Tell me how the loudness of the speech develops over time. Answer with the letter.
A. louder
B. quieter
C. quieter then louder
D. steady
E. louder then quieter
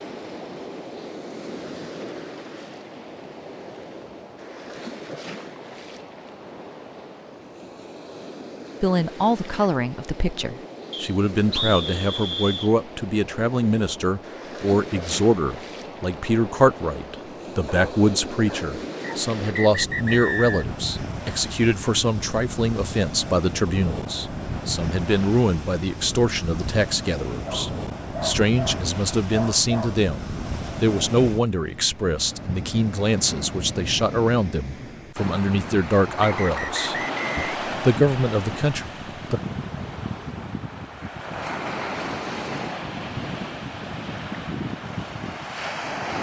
D.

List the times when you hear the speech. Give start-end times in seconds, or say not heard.
8.8-39.4.